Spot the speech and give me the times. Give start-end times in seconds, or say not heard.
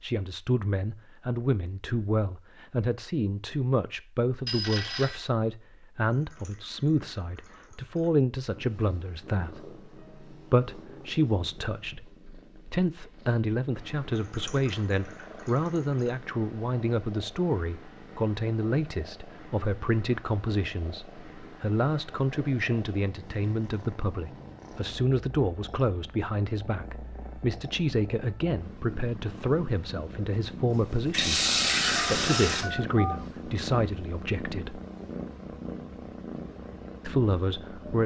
0.0-12.1, 12.7-34.8, 37.0-38.0.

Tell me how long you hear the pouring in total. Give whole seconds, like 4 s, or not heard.
6 s.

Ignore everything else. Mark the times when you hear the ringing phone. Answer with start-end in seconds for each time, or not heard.
4.5-5.2, 31.9-33.1.